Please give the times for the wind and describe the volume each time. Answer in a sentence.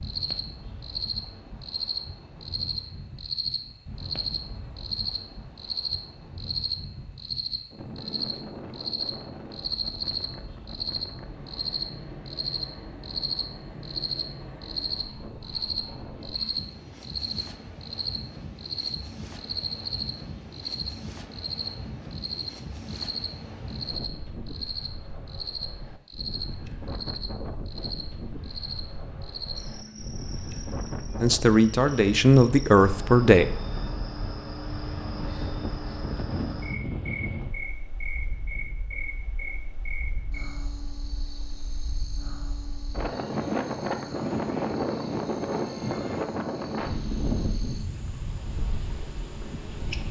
You can hear the wind from 0.0 to 50.0 s, getting louder.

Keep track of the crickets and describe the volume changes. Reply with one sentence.
The volume of the crickets goes down.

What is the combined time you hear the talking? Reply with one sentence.
The talking can be heard for 2 seconds in total.